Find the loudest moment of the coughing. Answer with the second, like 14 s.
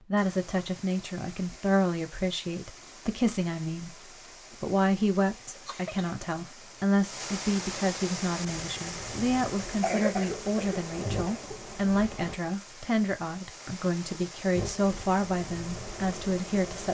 10 s.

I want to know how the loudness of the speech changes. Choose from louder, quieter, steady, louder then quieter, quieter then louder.
steady.